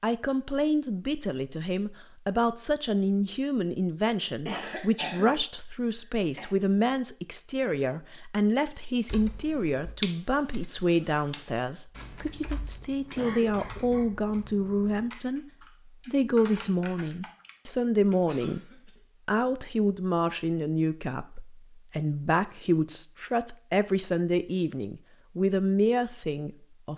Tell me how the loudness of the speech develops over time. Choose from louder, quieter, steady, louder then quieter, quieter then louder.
steady.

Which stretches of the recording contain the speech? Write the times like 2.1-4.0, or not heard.
0.0-18.6, 19.2-26.9.